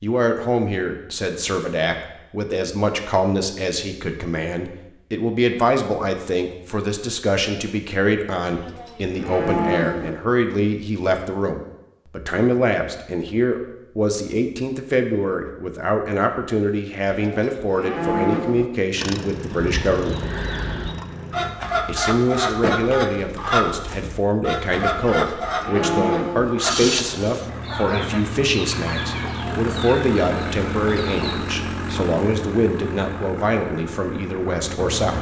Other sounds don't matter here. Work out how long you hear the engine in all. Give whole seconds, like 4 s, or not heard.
11 s.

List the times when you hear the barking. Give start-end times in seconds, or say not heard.
not heard.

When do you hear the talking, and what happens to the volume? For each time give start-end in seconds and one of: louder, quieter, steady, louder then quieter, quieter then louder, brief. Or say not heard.
0.0-20.2 steady
21.9-35.1 steady.